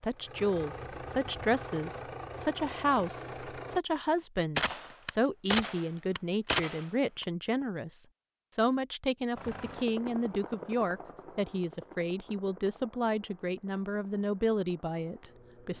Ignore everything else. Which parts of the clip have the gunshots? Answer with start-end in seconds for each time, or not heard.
4.5-7.2.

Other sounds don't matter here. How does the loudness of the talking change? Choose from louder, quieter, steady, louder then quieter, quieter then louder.
steady.